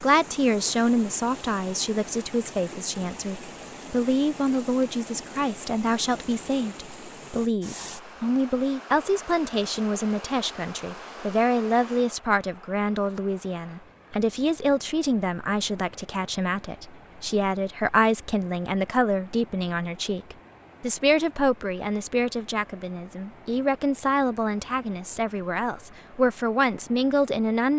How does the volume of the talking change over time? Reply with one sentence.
The loudness of the talking stays about the same.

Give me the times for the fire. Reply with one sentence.
The fire can't be heard in this clip.